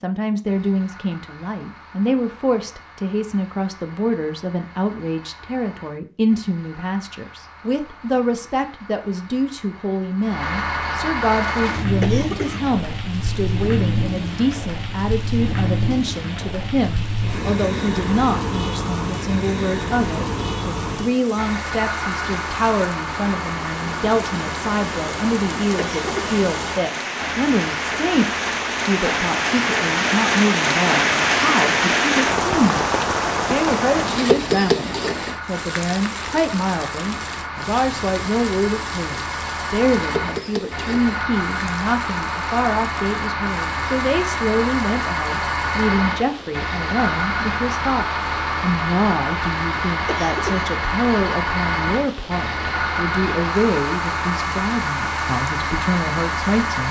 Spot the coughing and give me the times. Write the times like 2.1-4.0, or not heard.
12.0-12.7, 25.8-26.3, 50.0-50.6.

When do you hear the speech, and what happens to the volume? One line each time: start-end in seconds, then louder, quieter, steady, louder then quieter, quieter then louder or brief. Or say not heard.
0.0-56.8 steady.